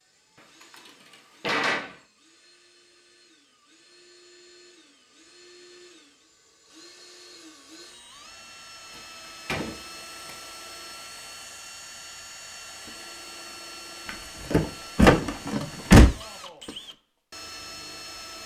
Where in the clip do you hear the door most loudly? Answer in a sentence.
The loudest moment of the door is at 16 seconds.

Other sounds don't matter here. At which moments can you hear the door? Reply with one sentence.
You can hear the door from 1.4 to 1.9 s, from 8.9 to 10.3 s and from 14.1 to 16.1 s.